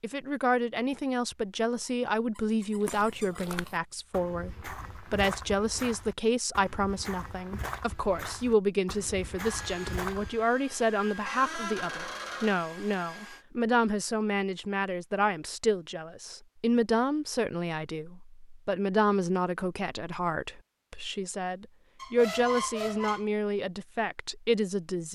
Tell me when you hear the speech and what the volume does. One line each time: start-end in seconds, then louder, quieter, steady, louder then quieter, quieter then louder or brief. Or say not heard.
0.0-25.1 steady.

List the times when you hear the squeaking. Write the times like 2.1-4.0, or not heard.
1.8-3.5, 11.2-12.7, 21.9-23.2.